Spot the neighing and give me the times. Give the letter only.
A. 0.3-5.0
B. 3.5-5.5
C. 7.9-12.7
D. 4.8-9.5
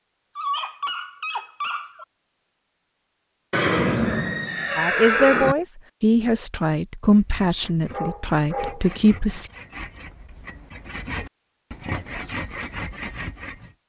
B.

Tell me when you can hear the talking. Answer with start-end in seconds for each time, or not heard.
4.8-9.5.